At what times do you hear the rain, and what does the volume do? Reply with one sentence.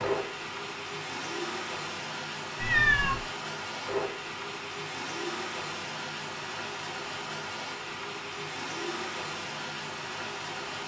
The rain can be heard from 0.0 to 10.8 s, at a steady volume.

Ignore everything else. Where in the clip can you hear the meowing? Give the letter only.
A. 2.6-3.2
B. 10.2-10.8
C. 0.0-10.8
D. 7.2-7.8
A.